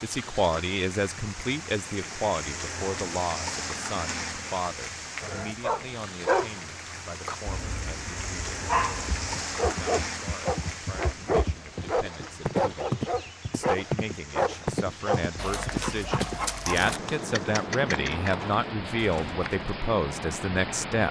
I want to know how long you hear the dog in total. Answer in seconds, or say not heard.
12 s.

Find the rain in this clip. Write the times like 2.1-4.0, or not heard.
0.0-21.0.